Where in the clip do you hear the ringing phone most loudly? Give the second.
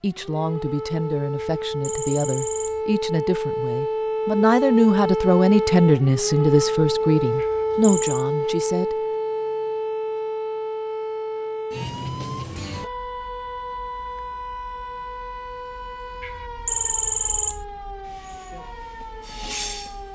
17 s.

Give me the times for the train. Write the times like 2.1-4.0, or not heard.
18.0-20.0.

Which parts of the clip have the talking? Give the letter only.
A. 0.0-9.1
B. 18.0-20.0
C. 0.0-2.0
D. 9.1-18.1
A.